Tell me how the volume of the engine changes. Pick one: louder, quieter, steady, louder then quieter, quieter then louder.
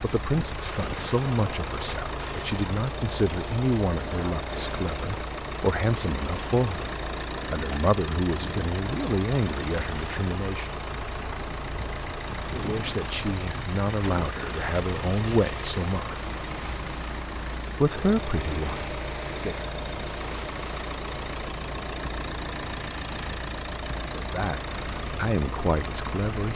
steady.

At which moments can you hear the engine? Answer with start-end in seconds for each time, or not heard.
0.0-26.5.